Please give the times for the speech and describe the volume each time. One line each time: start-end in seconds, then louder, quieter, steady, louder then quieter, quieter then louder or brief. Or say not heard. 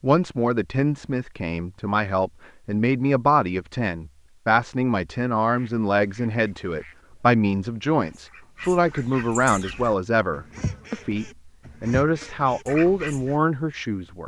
0.0-14.2 steady.